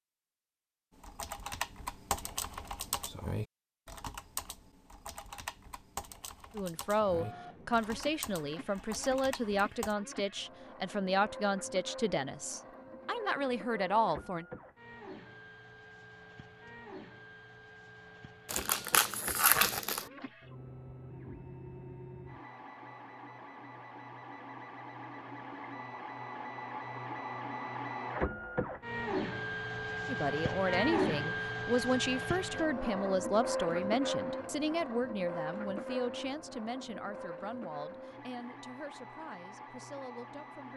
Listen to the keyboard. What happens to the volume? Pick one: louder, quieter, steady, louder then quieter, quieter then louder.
quieter.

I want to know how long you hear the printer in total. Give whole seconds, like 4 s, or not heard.
34 s.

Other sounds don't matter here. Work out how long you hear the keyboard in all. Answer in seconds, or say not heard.
9 s.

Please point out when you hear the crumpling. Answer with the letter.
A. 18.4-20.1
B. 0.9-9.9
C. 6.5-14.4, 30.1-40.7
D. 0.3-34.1
A.